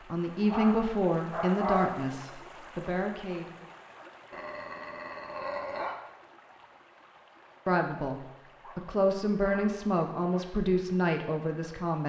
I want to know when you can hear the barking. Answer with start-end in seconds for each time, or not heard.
0.5-2.1, 4.3-6.0, 8.6-10.4.